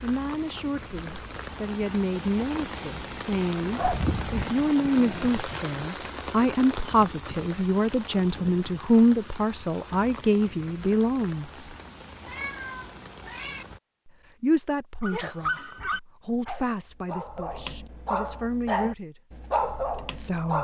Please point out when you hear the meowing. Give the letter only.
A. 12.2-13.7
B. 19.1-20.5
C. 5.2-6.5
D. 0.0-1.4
A.